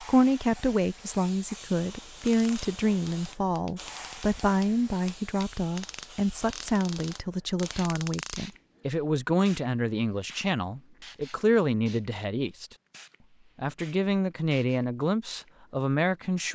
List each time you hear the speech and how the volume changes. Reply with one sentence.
You can hear the speech from 0.0 to 12.7 s, at a steady volume; and briefly from 13.6 to 16.4 s.